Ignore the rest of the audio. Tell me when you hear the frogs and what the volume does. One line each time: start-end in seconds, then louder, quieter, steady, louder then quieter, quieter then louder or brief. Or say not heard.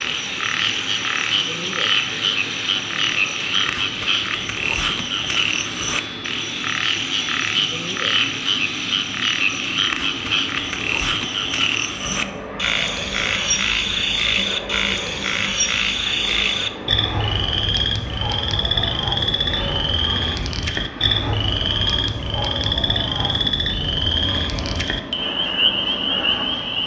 0.0-26.8 steady.